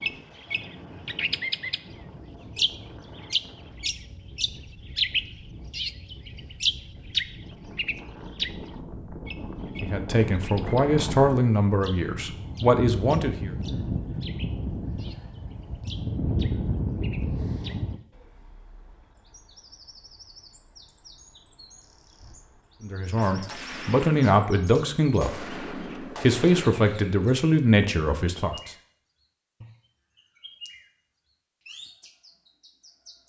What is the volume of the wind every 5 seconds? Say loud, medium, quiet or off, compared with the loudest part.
quiet, medium, loud, loud, off, off, off.